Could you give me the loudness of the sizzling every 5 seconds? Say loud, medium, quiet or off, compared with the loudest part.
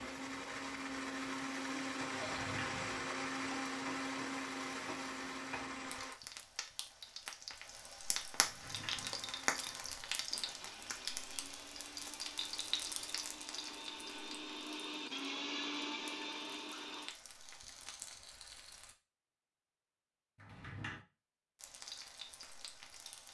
medium, loud, loud, medium, medium.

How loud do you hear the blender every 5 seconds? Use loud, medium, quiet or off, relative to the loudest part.
loud, medium, medium, loud, off.